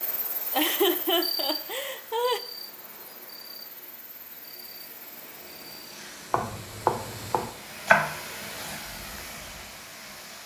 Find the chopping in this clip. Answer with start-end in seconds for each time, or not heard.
6.3-8.8.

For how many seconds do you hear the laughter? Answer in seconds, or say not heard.
2 s.